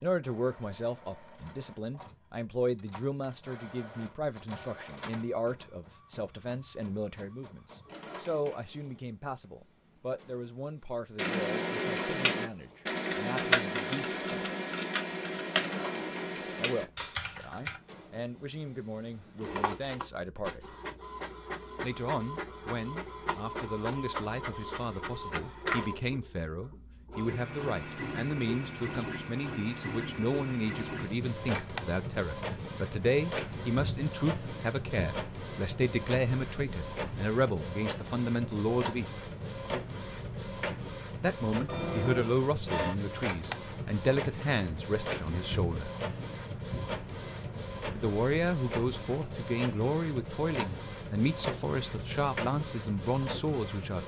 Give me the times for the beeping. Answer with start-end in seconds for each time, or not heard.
41.6-42.3.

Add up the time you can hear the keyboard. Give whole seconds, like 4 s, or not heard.
7 s.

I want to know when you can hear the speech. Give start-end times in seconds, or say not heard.
0.0-14.4, 16.6-20.8, 21.8-39.0, 41.2-45.9, 48.0-54.0.